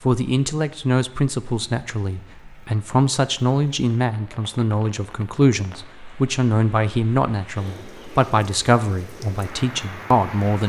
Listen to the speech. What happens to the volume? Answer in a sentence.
The loudness of the speech stays about the same.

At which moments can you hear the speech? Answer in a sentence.
The speech can be heard from 0.1 to 10.6 s.